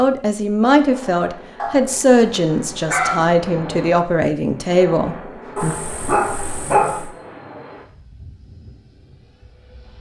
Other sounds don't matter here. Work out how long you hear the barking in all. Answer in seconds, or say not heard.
3 s.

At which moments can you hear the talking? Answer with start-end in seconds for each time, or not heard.
0.0-5.8.